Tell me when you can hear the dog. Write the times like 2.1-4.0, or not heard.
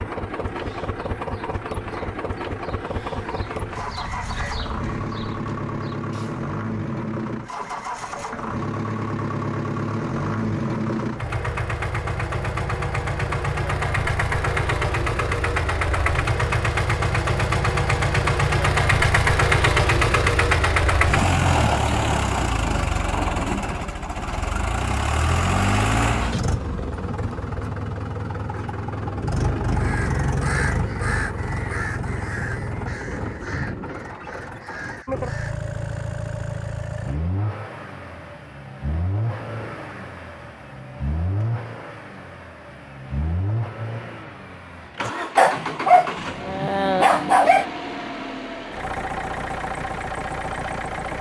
45.0-47.6.